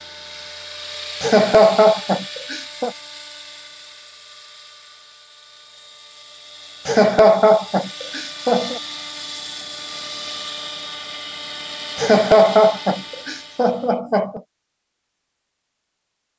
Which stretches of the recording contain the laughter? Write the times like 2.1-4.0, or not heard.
1.2-2.9, 6.8-8.8, 11.9-14.4.